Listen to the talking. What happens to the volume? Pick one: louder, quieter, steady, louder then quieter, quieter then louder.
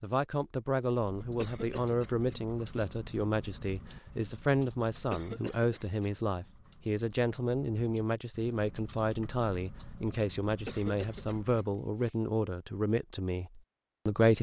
steady.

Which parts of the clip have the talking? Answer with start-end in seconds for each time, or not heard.
0.0-14.3.